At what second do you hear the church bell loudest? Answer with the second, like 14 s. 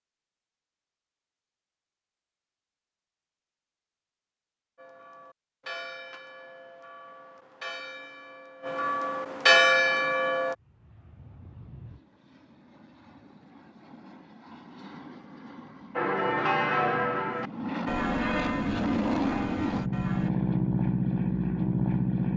10 s.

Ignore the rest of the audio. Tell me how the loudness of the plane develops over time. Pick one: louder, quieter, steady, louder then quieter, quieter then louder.
louder.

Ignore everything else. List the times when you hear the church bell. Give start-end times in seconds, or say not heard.
4.8-10.6, 15.9-20.3.